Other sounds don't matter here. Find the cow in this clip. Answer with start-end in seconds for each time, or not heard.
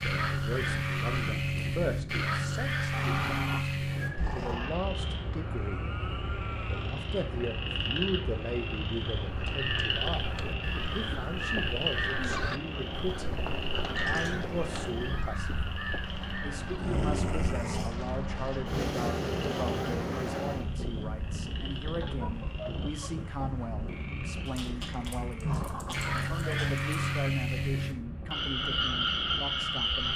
5.5-6.8.